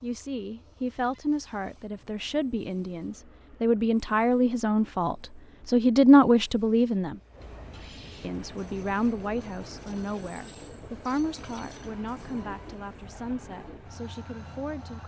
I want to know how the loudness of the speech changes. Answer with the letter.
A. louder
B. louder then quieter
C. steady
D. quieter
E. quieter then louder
B.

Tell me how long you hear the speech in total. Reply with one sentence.
The speech can be heard for 14 seconds in total.